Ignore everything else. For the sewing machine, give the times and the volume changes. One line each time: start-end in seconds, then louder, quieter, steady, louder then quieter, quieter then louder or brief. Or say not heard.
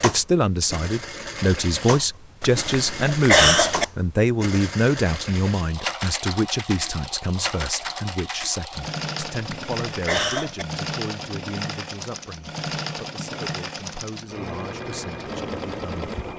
0.0-16.3 steady.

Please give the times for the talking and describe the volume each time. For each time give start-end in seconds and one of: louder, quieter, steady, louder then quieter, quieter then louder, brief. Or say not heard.
0.0-16.3 quieter.